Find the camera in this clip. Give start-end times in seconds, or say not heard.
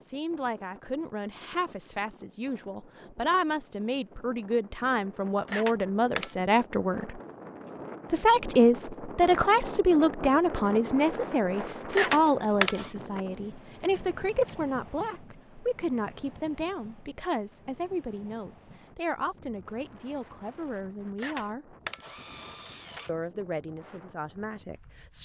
5.5-6.3, 11.9-12.9, 21.1-23.1.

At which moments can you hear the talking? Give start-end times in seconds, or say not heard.
0.0-7.2, 8.1-21.8, 23.1-25.1.